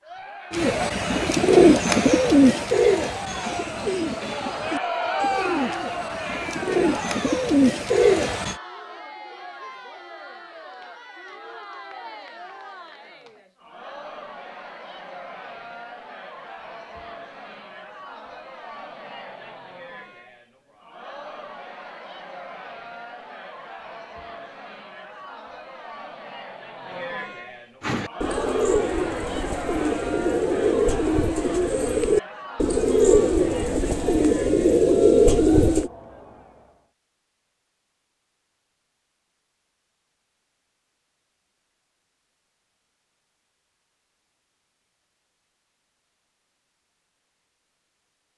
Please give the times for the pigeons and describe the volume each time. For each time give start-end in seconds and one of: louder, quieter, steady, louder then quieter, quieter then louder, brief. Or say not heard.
0.5-8.6 quieter then louder
27.8-35.9 louder.